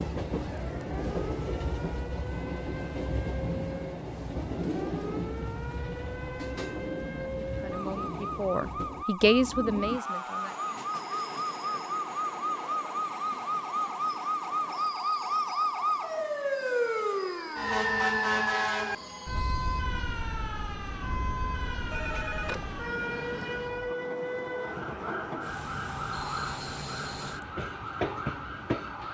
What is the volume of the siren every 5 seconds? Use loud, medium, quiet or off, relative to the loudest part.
quiet, medium, loud, loud, medium, medium.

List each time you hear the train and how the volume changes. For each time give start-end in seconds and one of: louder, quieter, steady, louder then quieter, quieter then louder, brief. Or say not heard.
0.0-29.0 quieter then louder.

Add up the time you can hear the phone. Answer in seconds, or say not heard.
2 s.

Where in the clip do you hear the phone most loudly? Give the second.
22 s.